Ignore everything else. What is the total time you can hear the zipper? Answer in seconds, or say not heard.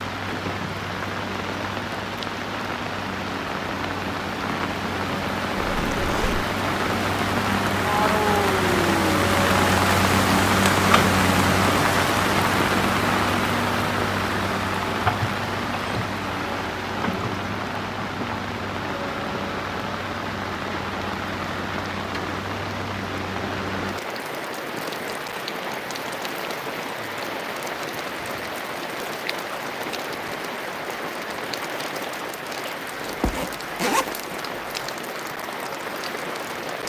3 s.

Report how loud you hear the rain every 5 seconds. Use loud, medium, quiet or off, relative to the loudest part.
medium, loud, loud, medium, medium, medium, medium, medium.